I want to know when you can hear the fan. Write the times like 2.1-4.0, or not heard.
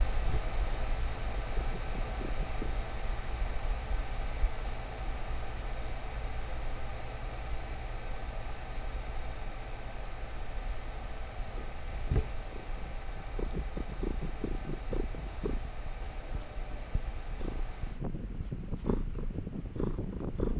0.0-20.5.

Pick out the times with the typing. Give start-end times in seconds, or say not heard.
not heard.